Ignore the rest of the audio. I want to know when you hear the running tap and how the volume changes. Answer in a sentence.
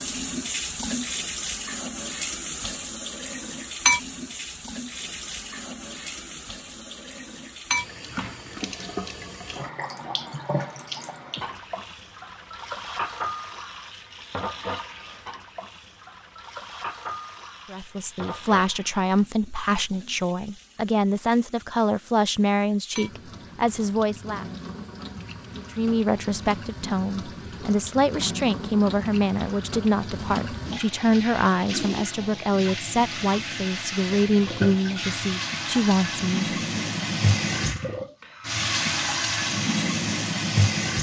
The running tap can be heard from 0.0 to 40.9 s, getting quieter then louder.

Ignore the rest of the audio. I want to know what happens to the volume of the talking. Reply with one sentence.
The volume of the talking stays about the same.